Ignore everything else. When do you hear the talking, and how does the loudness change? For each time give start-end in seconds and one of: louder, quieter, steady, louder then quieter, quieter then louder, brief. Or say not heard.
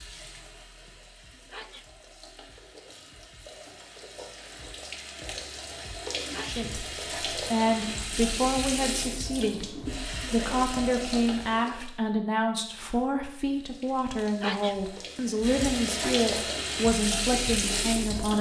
6.3-18.3 steady.